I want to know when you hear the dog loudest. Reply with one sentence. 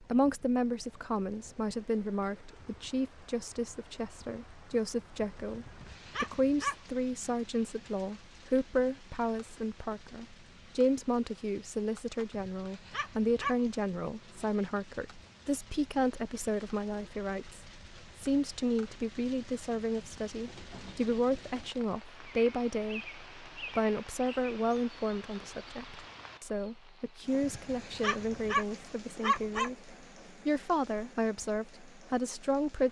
The volume of the dog peaks at 29 seconds.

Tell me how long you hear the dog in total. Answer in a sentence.
The dog can be heard for 5 seconds in total.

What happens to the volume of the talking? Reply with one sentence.
The loudness of the talking stays about the same.